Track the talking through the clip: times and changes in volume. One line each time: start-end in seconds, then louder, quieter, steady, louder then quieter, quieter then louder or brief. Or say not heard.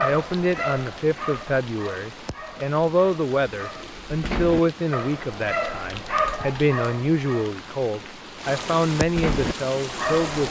0.0-10.4 steady.